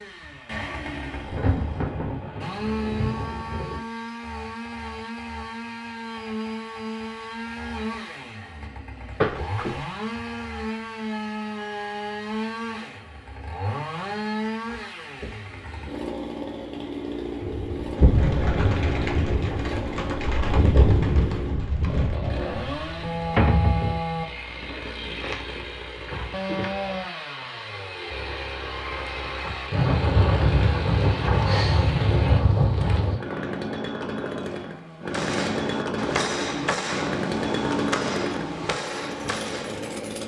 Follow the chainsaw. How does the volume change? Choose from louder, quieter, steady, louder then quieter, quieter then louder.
steady.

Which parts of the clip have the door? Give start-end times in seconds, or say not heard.
9.2-9.8, 23.4-24.1.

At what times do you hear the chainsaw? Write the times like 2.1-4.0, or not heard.
0.0-40.2.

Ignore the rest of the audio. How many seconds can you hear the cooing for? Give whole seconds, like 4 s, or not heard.
9 s.